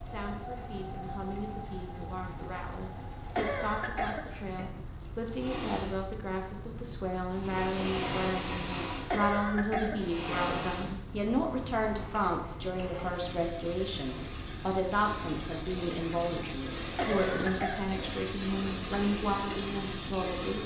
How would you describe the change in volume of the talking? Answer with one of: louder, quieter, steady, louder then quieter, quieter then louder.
louder.